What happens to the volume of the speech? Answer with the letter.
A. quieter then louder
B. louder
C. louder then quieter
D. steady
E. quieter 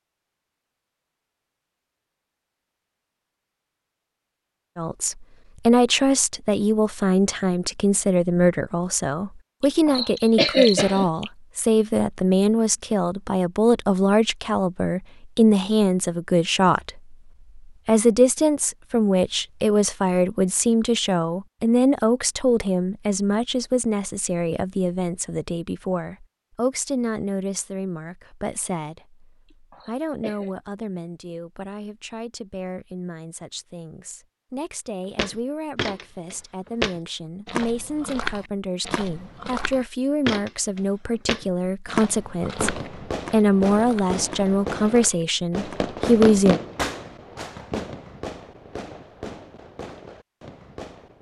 A.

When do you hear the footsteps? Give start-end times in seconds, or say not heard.
35.1-45.9.